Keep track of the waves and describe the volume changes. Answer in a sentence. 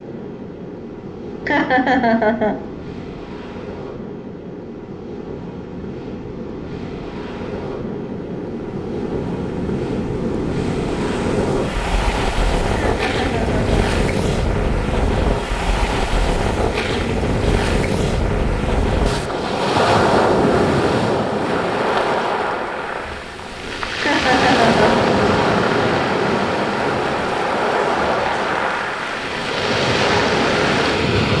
The volume of the waves goes up.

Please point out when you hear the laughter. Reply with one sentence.
The laughter can be heard from 1.4 to 2.6 s, from 12.8 to 13.8 s and from 24.0 to 25.1 s.